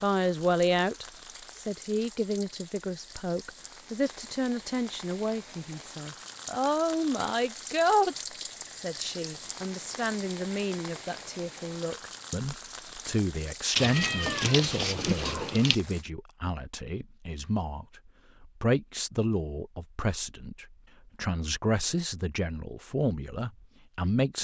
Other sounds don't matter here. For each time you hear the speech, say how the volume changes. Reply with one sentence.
You can hear the speech from 0.0 to 24.3 s, at a steady volume.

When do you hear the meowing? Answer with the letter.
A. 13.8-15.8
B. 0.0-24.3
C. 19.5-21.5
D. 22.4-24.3
A.